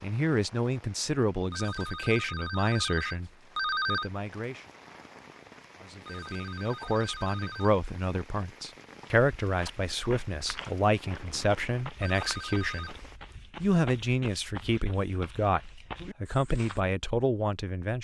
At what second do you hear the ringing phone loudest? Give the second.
4 s.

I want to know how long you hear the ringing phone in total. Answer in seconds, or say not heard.
5 s.